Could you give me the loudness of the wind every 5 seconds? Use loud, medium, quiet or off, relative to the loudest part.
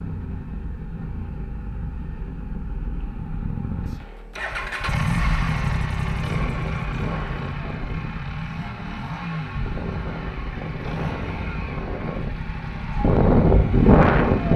off, quiet, loud.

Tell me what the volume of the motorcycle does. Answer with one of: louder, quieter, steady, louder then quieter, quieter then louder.
louder then quieter.